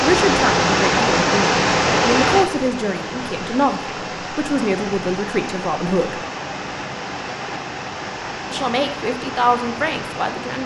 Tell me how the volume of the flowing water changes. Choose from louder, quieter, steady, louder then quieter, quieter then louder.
quieter.